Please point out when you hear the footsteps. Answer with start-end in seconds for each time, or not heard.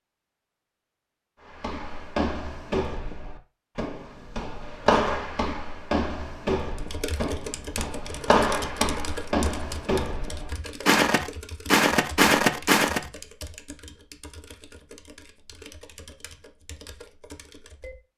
1.4-13.0.